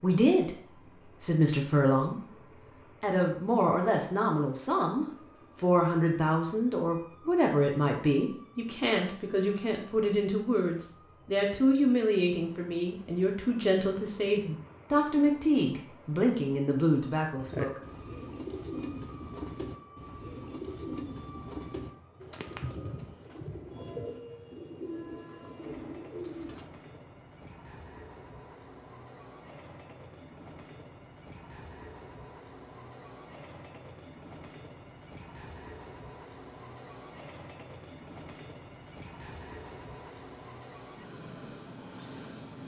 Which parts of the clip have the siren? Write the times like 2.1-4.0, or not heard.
not heard.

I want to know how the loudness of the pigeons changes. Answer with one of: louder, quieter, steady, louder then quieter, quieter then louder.
steady.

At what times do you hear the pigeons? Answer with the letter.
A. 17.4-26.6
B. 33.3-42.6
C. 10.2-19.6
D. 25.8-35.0
A.